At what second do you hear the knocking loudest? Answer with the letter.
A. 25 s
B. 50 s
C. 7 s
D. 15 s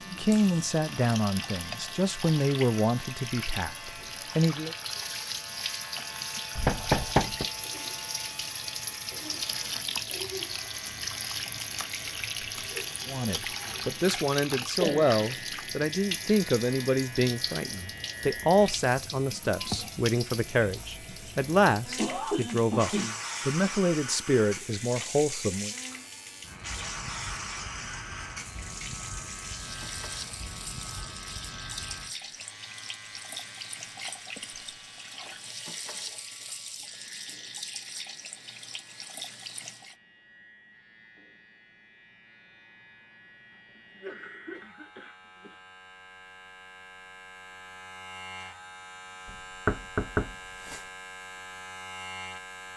C.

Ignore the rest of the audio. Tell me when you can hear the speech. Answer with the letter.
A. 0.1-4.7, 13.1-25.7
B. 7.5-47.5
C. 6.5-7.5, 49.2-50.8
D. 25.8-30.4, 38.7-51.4
A.